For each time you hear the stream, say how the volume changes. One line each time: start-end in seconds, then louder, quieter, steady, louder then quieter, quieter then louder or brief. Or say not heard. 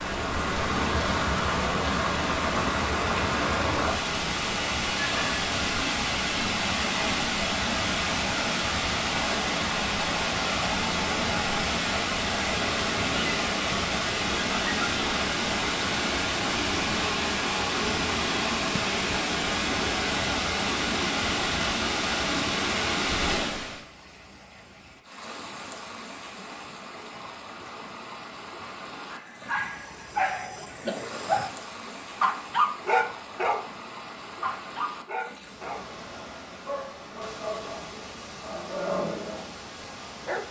0.0-40.4 quieter.